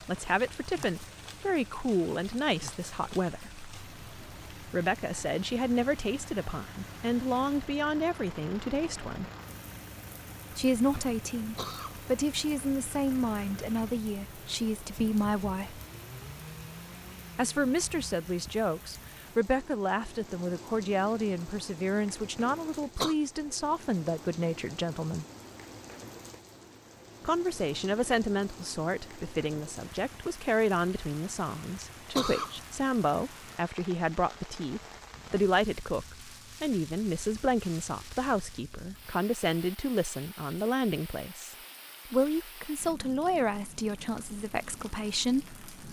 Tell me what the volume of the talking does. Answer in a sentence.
The loudness of the talking stays about the same.